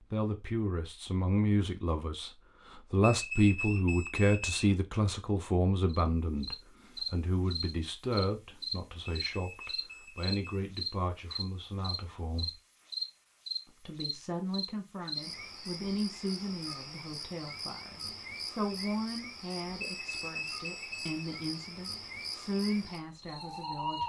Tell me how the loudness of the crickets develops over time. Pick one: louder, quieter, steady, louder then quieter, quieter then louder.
quieter.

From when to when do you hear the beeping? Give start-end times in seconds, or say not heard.
3.0-4.6, 9.1-10.6, 19.8-21.2.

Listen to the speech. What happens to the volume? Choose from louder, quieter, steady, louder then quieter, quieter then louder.
quieter.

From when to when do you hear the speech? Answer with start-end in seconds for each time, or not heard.
0.0-12.6, 13.7-24.0.